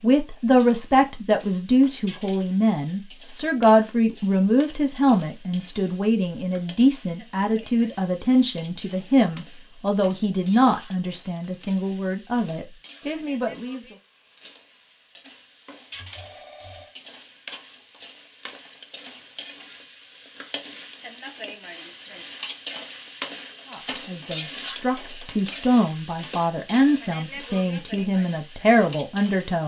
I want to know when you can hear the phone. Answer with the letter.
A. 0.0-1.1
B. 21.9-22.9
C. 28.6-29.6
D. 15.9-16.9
D.